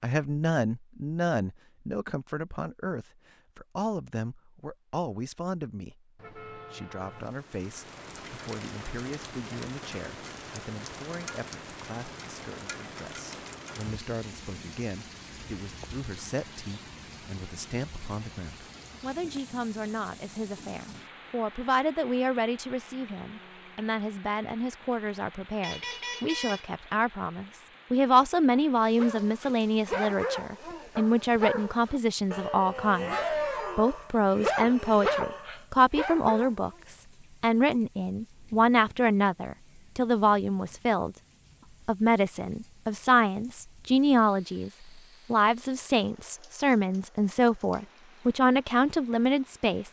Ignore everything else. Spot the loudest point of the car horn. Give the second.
26 s.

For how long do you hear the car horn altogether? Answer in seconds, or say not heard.
2 s.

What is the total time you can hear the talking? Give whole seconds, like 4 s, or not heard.
47 s.